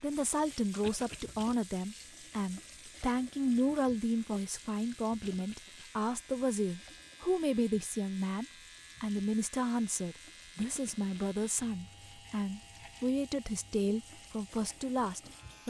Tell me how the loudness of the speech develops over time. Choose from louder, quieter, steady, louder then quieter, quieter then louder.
steady.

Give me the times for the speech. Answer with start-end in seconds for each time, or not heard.
0.0-15.6.